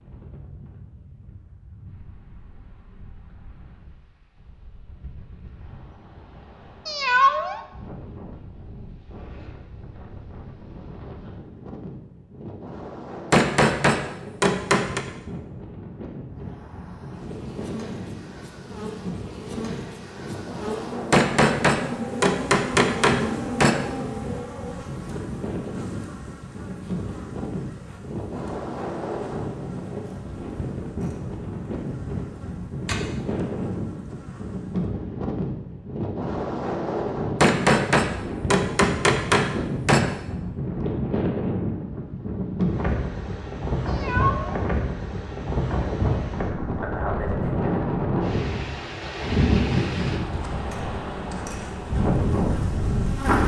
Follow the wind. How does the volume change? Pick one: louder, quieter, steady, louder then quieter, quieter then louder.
louder.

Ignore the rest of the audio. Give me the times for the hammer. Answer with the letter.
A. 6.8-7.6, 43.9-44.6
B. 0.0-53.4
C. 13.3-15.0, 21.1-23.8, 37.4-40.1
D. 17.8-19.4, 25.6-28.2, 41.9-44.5
C.